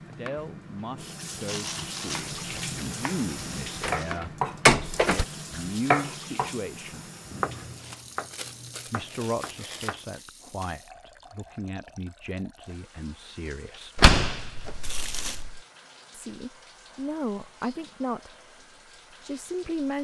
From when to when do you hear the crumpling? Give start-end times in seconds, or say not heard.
1.4-4.2, 7.8-10.2, 14.8-15.4.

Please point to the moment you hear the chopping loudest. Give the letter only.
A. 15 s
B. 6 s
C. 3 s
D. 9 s
B.